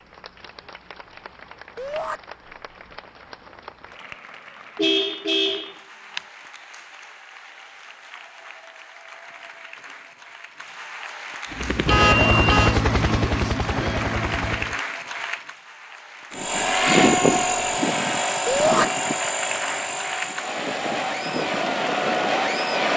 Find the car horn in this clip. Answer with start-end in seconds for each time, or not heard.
4.8-6.2, 11.8-12.8.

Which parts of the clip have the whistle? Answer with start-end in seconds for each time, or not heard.
not heard.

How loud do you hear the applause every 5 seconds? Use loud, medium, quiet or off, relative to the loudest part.
quiet, quiet, medium, medium, loud.